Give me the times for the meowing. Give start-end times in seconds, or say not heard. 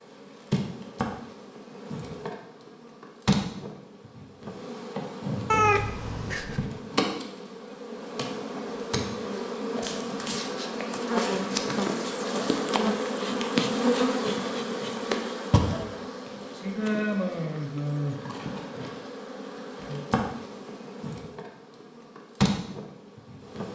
5.5-6.7.